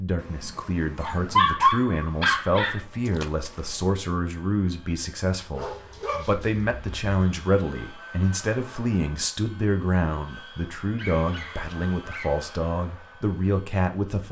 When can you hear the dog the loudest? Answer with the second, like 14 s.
2 s.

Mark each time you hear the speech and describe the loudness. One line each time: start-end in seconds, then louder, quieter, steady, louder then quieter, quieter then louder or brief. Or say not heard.
0.0-14.2 steady.